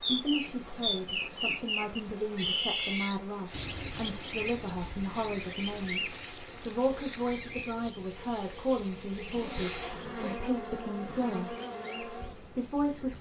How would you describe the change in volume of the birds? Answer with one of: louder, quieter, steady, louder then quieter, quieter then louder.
quieter.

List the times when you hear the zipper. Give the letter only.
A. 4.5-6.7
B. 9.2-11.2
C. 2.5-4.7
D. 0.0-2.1
B.